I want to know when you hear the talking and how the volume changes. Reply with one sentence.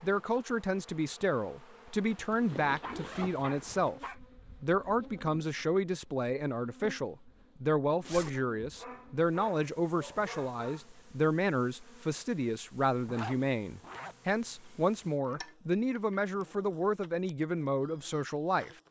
The talking can be heard from 0.0 to 18.7 s, at a steady volume.